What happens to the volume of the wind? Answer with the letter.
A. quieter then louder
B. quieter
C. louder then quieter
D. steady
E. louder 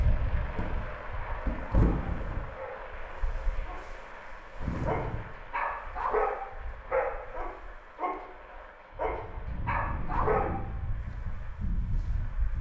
A.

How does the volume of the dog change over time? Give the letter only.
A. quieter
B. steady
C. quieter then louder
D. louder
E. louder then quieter
D.